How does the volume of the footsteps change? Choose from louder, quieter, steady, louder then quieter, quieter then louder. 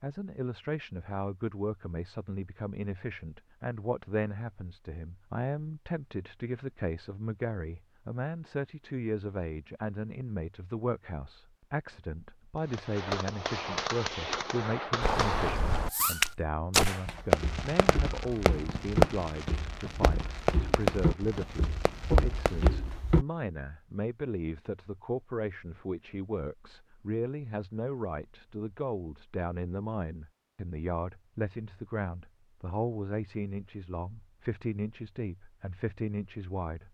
quieter then louder.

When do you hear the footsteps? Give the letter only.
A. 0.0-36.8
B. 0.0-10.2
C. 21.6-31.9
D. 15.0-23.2
D.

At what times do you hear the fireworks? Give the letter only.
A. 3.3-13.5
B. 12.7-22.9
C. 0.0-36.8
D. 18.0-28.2
B.